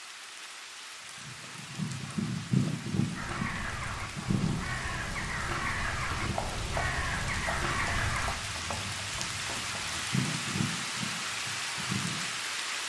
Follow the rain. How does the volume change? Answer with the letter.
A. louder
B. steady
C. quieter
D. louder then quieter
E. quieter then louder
A.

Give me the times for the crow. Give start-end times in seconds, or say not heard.
3.1-8.3.